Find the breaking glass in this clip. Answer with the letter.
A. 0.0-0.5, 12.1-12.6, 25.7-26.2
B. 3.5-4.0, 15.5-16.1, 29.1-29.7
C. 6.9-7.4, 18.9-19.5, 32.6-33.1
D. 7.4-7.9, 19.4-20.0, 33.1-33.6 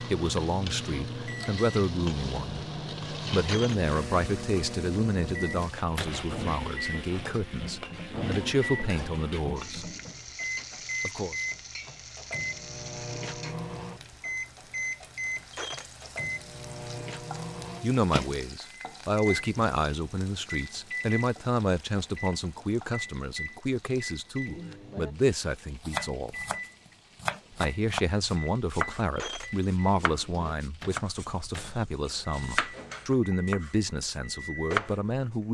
B.